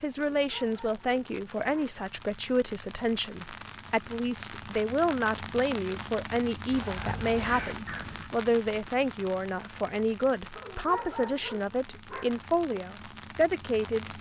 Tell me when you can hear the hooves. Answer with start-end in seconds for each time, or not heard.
not heard.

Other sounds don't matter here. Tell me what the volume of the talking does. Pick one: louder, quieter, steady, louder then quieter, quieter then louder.
steady.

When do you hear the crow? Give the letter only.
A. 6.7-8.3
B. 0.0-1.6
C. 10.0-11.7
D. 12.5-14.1
A.